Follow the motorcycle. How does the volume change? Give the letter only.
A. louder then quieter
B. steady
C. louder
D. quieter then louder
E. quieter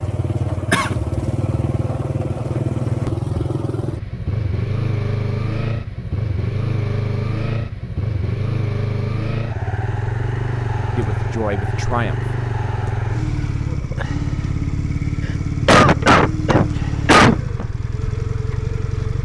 B.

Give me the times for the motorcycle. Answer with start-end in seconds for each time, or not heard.
0.0-19.1.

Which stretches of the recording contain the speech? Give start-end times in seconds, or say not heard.
10.9-12.2.